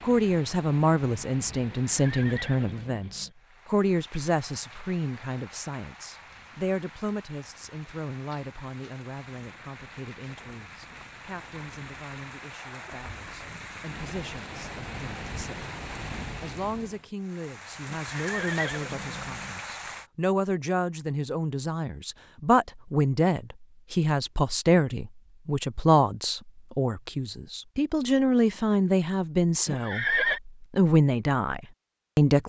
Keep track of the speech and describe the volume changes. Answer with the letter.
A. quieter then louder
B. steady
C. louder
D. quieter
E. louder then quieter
A.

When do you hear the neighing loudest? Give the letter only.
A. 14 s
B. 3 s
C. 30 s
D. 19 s
C.